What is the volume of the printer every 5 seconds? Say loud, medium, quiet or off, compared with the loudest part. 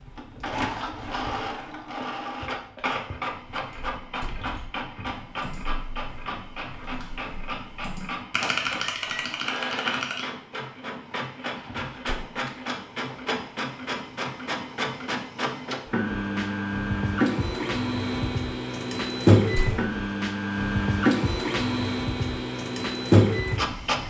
medium, medium, medium, loud, loud.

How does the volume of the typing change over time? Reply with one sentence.
The loudness of the typing goes up.